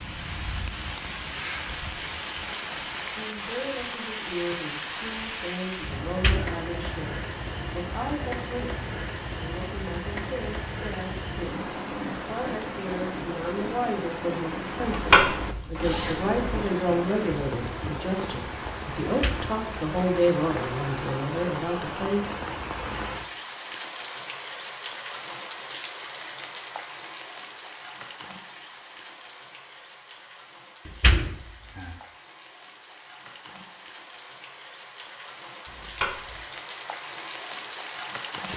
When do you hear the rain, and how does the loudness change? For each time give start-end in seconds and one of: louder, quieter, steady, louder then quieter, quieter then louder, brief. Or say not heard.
0.0-38.5 quieter.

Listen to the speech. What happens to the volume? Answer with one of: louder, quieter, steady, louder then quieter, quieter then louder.
louder.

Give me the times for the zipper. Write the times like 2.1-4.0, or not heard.
14.8-16.6, 35.6-36.4.